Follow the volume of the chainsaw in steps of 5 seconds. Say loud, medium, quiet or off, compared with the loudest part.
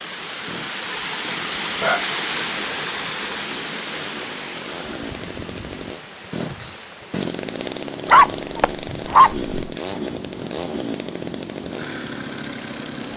medium, loud, loud.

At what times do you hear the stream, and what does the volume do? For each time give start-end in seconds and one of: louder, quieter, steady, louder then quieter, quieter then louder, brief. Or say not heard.
0.0-13.1 quieter.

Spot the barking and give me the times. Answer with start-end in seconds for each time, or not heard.
1.8-2.8, 8.1-9.6.